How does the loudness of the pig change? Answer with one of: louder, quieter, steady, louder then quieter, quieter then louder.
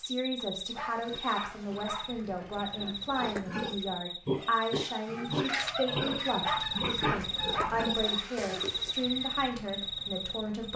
louder.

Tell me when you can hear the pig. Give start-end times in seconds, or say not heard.
0.9-8.9.